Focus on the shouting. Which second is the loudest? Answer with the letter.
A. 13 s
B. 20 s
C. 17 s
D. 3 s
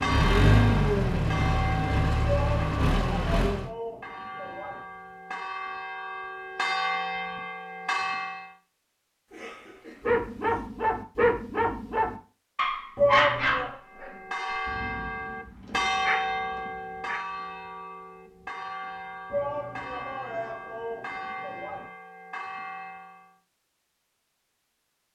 A.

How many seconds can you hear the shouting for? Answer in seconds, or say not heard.
6 s.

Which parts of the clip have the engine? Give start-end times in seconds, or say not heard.
0.0-3.7.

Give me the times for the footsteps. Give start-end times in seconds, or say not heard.
not heard.